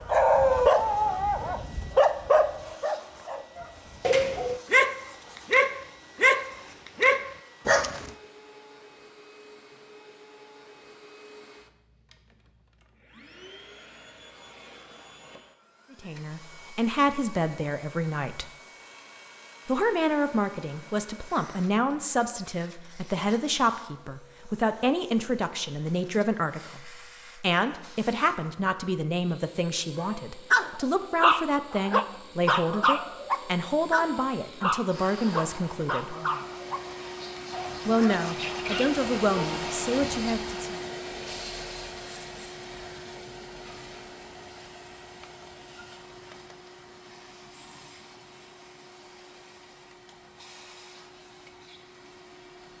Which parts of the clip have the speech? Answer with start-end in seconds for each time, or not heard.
15.9-18.5, 19.6-36.1, 37.9-40.8.